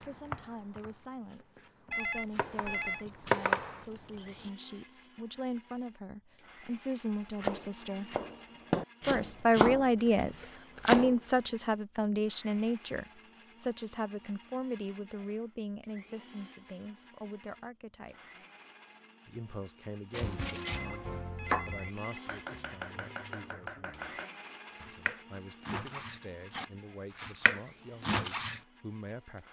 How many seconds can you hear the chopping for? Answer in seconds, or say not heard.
17 s.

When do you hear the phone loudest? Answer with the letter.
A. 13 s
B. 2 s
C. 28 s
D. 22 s
B.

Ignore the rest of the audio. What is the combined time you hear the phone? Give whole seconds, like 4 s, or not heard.
3 s.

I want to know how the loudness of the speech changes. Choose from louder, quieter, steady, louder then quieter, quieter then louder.
louder then quieter.